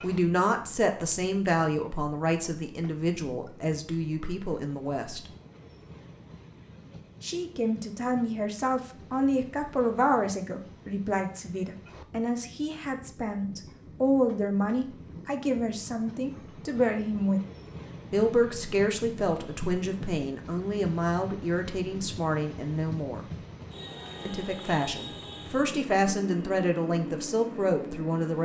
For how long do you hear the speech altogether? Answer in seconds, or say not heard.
25 s.